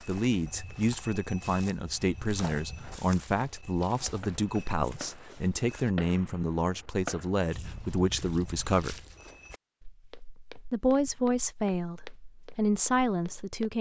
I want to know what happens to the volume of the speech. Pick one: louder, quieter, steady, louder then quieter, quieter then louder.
steady.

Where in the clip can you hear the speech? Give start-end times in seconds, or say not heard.
0.0-9.1, 10.7-13.7.